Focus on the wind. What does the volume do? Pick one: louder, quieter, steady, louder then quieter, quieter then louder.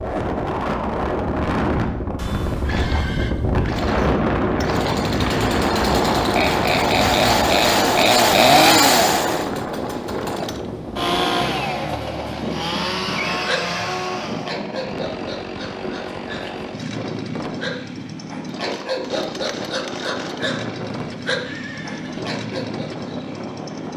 quieter.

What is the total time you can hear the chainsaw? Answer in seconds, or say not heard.
21 s.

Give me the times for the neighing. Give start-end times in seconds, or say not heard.
2.1-3.4, 13.1-14.1, 21.4-22.2.